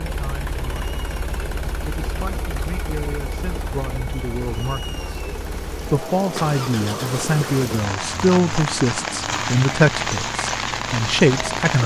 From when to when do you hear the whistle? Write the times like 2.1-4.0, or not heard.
not heard.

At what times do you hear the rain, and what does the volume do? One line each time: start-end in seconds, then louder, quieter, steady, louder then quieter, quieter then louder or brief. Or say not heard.
0.0-11.8 louder.